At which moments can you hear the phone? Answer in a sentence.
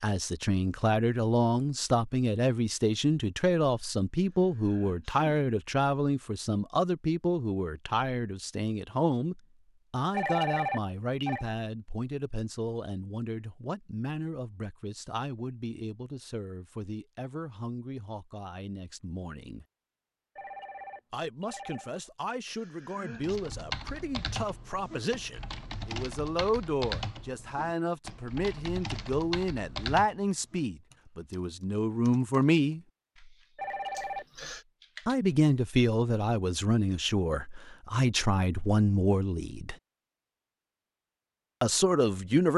The phone can be heard from 10.1 to 11.4 s, from 20.4 to 21.9 s and from 33.5 to 34.2 s.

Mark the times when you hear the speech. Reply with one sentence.
You can hear the speech from 0.0 to 19.6 s, from 21.1 to 32.8 s, from 35.0 to 39.8 s and from 41.6 to 42.5 s.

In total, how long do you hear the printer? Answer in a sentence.
The printer can't be heard in this clip.